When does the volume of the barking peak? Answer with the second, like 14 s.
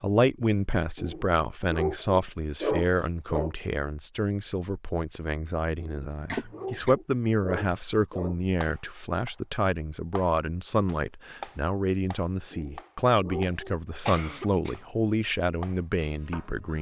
3 s.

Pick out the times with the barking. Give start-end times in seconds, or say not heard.
0.9-3.5, 5.8-8.4, 12.5-13.8.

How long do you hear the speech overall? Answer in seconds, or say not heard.
17 s.